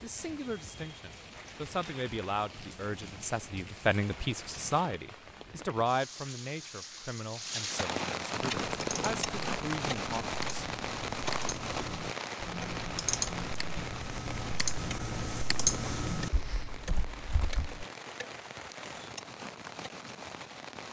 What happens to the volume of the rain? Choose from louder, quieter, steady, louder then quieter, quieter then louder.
louder then quieter.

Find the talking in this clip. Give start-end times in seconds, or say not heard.
0.0-10.7.